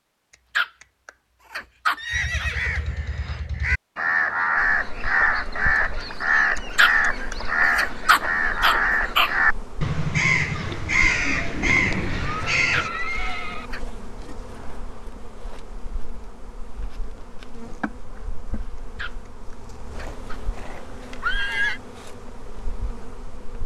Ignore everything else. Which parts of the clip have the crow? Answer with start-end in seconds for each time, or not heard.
2.1-12.9.